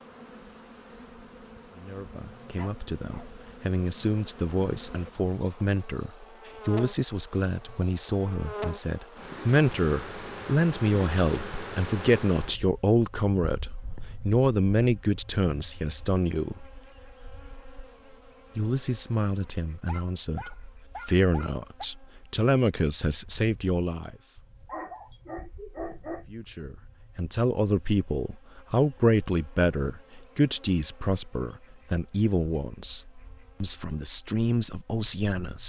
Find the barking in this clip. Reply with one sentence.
The barking can be heard from 2.5 to 3.3 s, from 19.9 to 21.9 s and from 24.6 to 26.2 s.